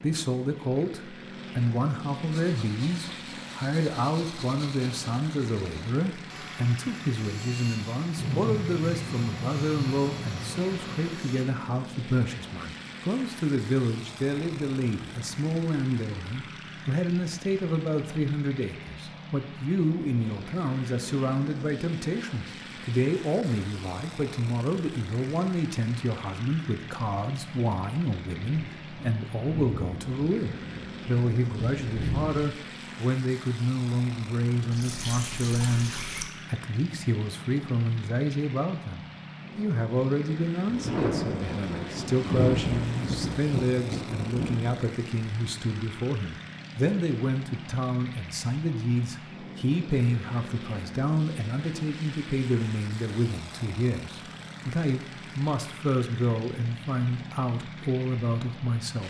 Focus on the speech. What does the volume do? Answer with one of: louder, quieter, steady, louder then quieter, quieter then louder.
steady.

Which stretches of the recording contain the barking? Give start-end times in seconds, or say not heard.
not heard.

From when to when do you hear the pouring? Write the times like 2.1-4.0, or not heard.
34.7-36.2.